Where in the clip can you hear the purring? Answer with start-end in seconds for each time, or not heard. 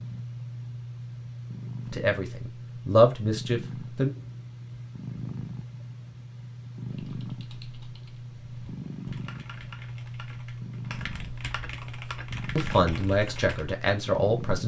0.0-14.6.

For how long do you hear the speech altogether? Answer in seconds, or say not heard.
4 s.